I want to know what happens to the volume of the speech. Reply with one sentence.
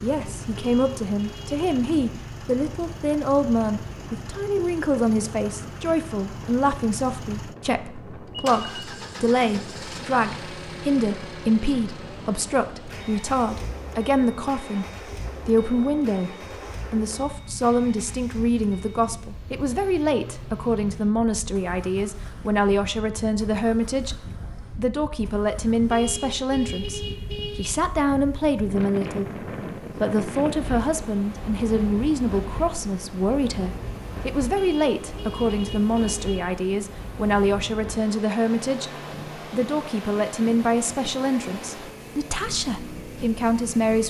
The loudness of the speech stays about the same.